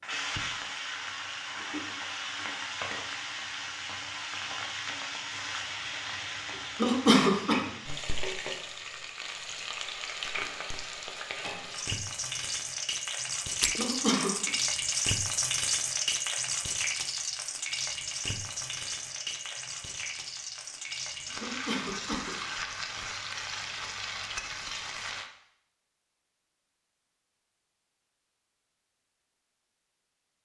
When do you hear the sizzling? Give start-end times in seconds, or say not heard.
0.0-25.3.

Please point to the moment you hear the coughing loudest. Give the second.
7 s.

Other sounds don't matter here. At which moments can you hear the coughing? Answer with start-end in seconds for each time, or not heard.
6.8-7.5, 13.8-14.5, 21.4-22.4.